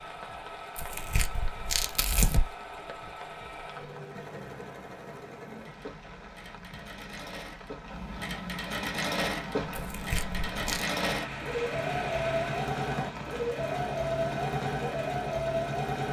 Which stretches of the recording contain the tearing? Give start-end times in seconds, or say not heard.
0.8-2.5, 9.8-10.8.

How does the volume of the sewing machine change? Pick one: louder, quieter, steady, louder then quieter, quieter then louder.
louder.